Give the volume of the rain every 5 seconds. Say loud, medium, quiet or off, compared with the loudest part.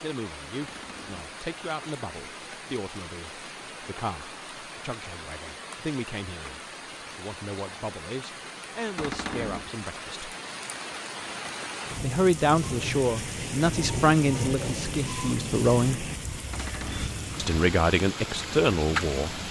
medium, medium, loud, loud.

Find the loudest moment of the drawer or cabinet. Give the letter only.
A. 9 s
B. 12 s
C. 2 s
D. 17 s
A.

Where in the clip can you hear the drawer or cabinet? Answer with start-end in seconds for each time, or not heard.
0.6-1.4, 8.9-9.7, 16.5-17.2.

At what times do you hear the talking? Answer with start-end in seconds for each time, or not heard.
0.0-10.3, 12.0-16.1, 17.4-19.4.